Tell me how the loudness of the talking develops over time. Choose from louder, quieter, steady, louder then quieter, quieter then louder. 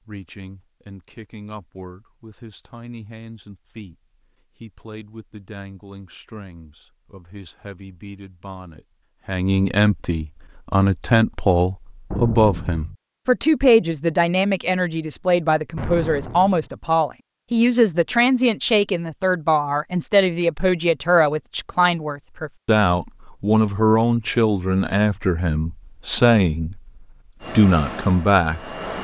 louder.